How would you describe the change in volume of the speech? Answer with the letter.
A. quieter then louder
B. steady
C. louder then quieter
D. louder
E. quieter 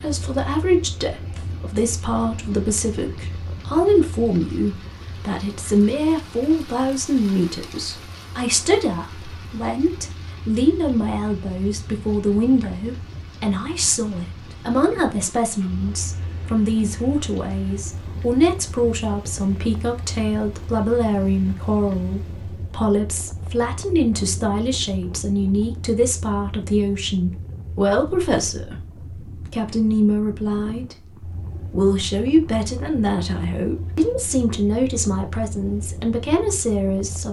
B.